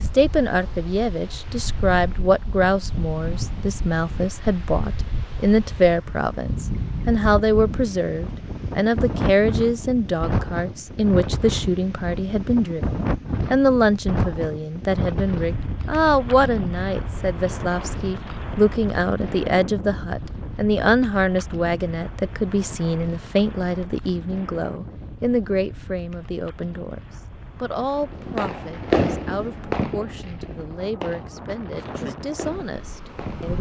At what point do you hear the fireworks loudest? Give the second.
29 s.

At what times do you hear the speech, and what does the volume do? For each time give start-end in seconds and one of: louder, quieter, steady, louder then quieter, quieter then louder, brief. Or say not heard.
0.1-33.5 quieter.